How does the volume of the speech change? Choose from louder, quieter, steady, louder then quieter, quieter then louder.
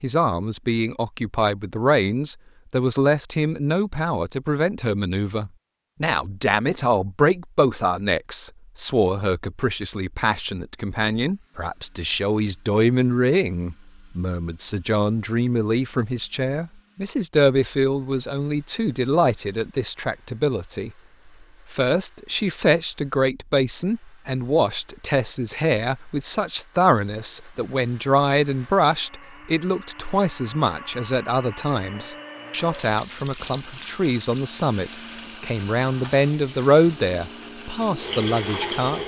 steady.